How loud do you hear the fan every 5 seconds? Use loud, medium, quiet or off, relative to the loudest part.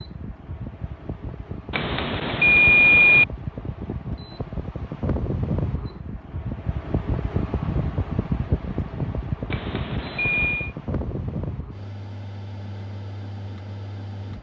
medium, loud, medium.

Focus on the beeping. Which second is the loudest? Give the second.
3 s.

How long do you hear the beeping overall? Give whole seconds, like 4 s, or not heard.
3 s.